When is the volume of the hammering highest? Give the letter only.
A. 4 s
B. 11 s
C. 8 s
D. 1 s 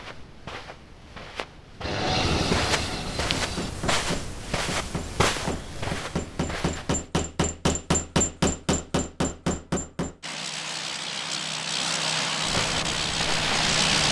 C.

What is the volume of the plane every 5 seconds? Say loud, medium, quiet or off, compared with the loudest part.
loud, off, loud.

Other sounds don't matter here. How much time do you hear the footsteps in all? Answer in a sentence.
The footsteps can be heard for 9 seconds in total.